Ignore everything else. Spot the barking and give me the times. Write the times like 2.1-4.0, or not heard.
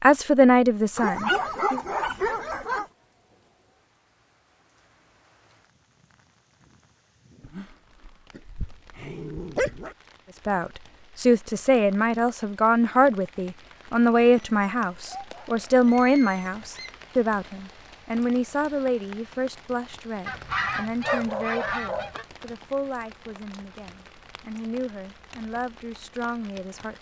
0.9-2.9, 7.4-9.9, 14.3-16.9, 21.1-22.1.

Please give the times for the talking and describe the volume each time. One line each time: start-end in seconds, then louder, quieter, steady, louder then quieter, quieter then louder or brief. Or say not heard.
0.0-1.8 brief
10.4-26.9 quieter.